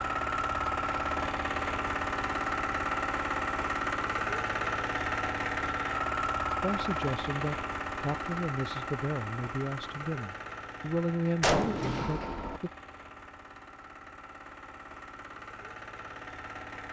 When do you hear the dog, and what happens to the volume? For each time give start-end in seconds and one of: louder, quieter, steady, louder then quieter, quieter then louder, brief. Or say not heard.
not heard.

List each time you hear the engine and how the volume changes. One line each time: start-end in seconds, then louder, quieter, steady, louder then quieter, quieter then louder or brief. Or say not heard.
0.0-16.8 quieter.